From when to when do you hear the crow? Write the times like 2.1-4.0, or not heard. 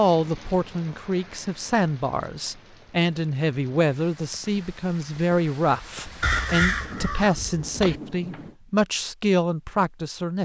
5.6-8.4.